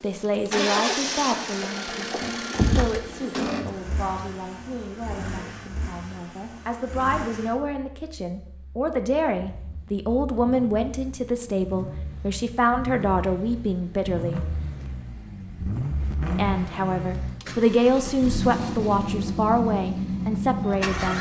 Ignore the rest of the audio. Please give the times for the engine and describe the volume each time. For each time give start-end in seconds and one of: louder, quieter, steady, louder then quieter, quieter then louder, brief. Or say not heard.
0.0-21.1 quieter then louder.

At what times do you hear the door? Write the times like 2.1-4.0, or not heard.
2.2-3.7.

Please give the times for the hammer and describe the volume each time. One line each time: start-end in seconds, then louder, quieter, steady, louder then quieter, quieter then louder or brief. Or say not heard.
not heard.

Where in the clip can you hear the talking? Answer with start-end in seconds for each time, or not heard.
0.0-14.4, 16.4-21.1.